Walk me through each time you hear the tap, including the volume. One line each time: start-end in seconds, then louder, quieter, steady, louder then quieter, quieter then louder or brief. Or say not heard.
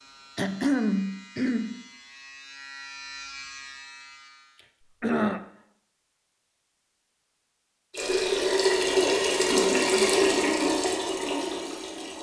7.9-12.1 quieter.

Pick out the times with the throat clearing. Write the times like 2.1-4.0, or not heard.
0.3-1.8, 5.0-5.4, 9.4-10.1.